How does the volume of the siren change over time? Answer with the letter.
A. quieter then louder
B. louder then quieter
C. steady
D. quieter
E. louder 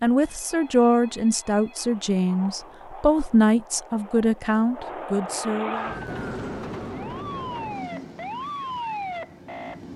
E.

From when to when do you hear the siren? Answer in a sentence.
The siren can be heard from 5.7 to 9.9 s.